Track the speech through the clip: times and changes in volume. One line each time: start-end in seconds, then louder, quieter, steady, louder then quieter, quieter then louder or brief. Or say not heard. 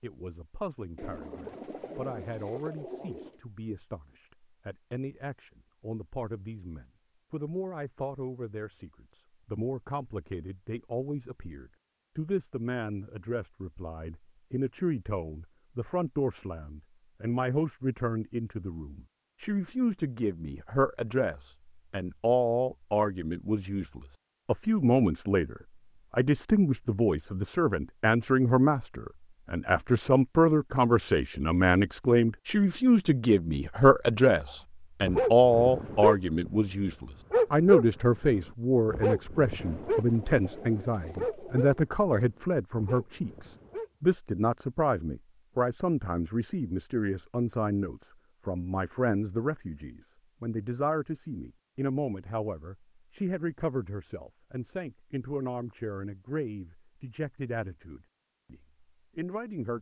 0.0-59.7 louder then quieter.